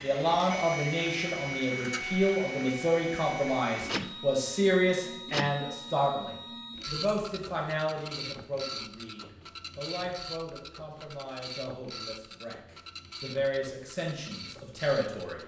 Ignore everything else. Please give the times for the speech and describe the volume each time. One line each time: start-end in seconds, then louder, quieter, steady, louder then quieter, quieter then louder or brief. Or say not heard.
0.0-15.4 quieter then louder.